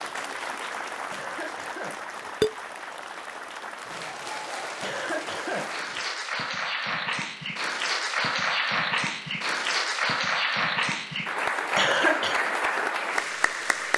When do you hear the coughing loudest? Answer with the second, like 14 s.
12 s.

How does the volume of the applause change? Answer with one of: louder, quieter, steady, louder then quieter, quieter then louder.
louder.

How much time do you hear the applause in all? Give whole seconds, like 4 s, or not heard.
14 s.